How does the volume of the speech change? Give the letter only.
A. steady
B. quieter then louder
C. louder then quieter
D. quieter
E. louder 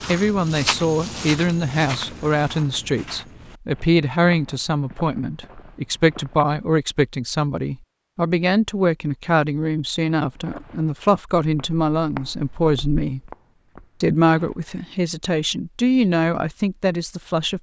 A.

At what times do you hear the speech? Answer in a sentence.
The speech can be heard from 0.1 to 13.3 s and from 14.0 to 17.5 s.